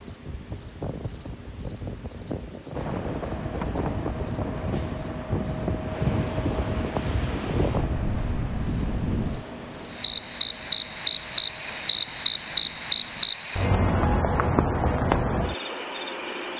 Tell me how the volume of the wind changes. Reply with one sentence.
The volume of the wind goes up.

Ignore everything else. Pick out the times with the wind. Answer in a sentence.
You can hear the wind from 0.0 to 9.4 s.